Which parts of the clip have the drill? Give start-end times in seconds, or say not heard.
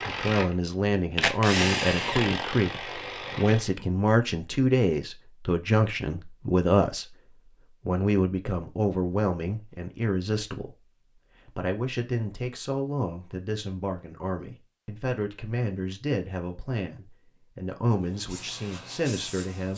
0.0-3.6.